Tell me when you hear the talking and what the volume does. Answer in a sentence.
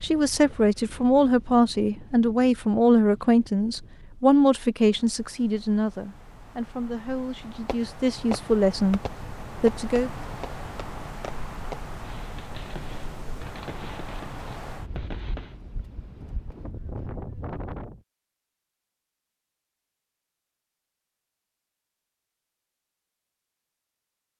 You can hear the talking from 0.0 to 10.1 s, getting quieter then louder.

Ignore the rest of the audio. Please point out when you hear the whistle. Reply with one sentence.
You can't hear the whistle here.